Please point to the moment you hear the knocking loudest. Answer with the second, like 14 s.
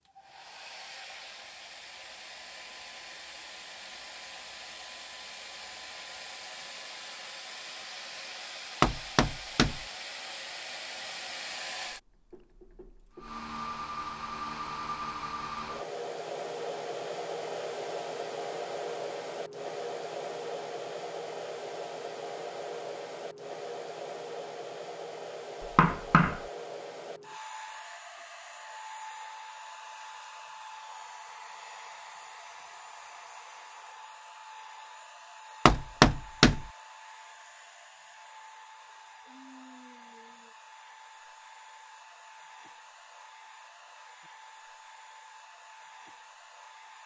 36 s.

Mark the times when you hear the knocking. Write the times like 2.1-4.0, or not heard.
8.8-9.8, 25.6-26.4, 35.6-36.6.